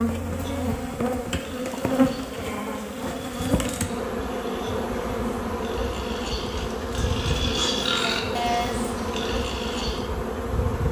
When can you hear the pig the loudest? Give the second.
8 s.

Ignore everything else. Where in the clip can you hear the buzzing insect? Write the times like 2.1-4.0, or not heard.
0.0-10.8.